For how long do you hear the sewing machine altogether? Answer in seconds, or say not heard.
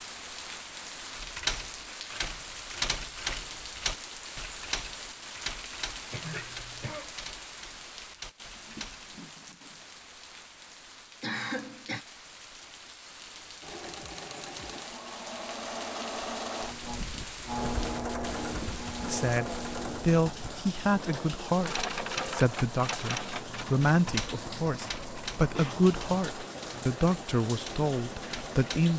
15 s.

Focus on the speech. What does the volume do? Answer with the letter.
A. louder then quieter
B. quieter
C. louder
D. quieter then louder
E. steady
E.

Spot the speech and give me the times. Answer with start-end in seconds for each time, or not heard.
19.0-28.9.